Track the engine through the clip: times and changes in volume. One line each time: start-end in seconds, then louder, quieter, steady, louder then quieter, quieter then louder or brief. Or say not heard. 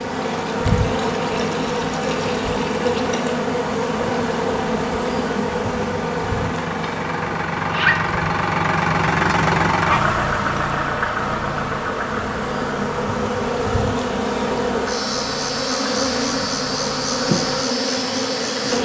0.0-18.7 louder then quieter.